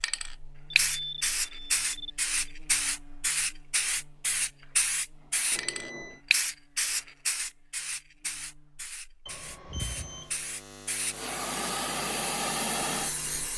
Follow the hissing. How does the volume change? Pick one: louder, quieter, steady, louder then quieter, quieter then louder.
quieter then louder.